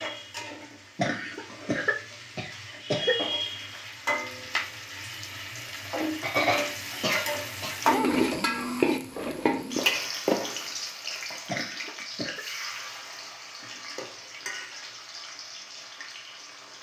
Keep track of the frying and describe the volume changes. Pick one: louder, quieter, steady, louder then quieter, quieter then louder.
louder then quieter.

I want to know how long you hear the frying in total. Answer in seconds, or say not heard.
17 s.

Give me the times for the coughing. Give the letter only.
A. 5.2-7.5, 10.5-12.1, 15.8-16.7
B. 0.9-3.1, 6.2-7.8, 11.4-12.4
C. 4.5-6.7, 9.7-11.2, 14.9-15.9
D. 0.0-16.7
B.